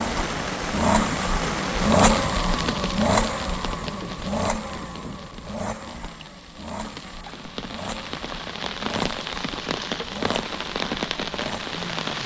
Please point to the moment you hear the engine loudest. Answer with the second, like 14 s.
2 s.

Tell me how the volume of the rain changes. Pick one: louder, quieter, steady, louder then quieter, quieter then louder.
quieter then louder.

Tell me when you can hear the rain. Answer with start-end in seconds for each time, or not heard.
0.0-12.2.